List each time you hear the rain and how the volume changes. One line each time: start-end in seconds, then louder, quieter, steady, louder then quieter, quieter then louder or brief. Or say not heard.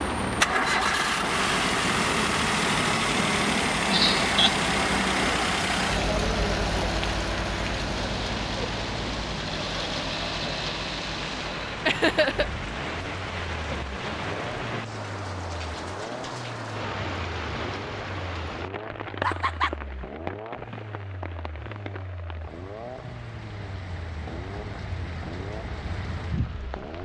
0.0-26.9 quieter.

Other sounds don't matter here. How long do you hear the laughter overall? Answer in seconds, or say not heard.
2 s.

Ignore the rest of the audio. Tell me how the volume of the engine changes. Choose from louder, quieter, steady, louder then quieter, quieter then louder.
quieter.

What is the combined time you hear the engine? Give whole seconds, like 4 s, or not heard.
27 s.